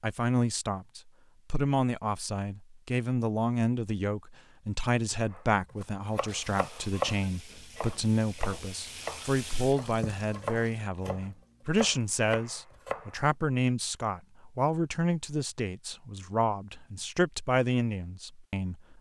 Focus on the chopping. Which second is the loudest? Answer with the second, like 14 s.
7 s.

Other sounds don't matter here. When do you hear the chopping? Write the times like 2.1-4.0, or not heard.
5.3-13.2.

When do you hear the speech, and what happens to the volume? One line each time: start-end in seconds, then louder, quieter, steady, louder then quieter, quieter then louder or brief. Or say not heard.
0.0-18.9 steady.